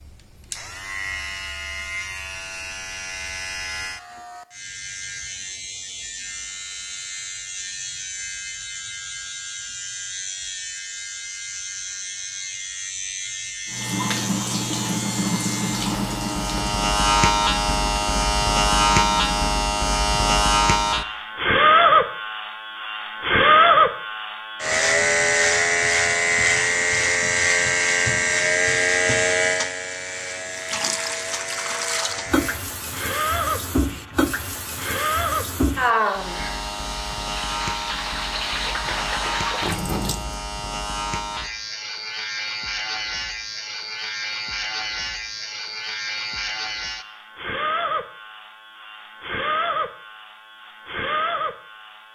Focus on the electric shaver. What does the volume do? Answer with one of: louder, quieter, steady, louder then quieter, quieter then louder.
louder then quieter.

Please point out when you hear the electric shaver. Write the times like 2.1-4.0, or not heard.
0.0-52.1.